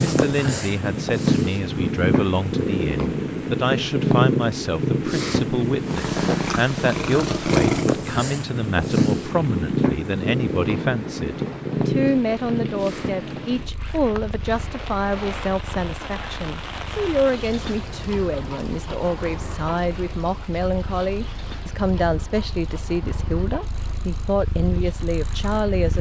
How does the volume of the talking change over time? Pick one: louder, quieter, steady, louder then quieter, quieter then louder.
steady.